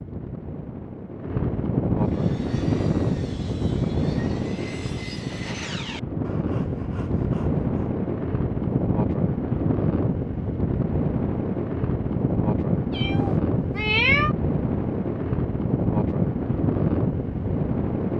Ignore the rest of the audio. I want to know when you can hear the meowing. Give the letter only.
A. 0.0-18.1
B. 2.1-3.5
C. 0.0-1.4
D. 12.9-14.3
D.